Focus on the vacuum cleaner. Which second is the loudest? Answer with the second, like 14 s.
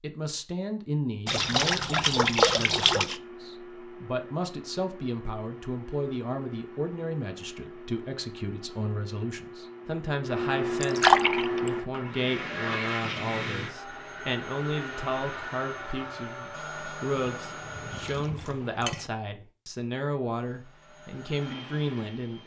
11 s.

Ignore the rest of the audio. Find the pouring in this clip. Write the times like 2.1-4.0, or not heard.
1.2-3.1, 10.8-11.7, 17.1-19.1.